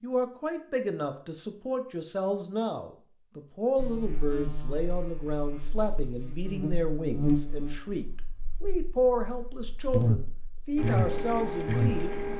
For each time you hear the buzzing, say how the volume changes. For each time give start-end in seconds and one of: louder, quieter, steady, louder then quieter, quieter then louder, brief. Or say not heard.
3.8-12.1 louder.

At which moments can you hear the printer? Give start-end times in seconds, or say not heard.
10.8-12.3.